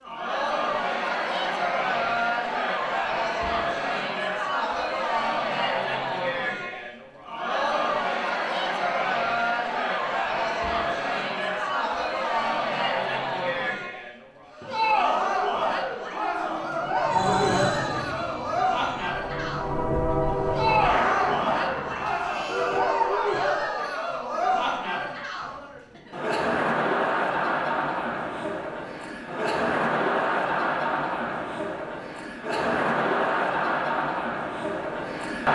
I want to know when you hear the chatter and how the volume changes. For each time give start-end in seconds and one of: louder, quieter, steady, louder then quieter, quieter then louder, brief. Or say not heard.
0.0-35.5 steady.